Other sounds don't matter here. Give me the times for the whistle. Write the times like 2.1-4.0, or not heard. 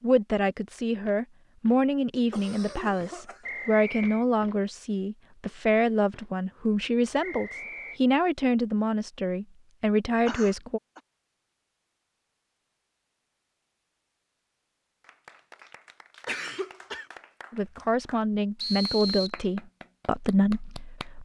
3.4-4.2, 7.2-8.0, 18.6-19.4.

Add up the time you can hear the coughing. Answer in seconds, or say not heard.
3 s.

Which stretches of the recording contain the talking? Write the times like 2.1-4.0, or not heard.
0.0-10.8, 17.5-21.2.